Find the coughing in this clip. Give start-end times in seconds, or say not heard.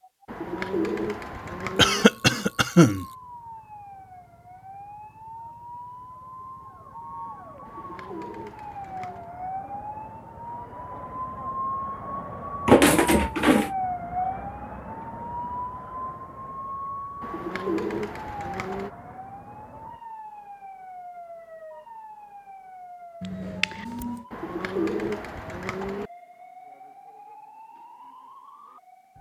1.8-3.0, 12.7-13.7, 23.2-24.2.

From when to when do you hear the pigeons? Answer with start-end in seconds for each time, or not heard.
0.2-2.0, 7.7-9.3, 17.2-18.9, 24.3-26.1.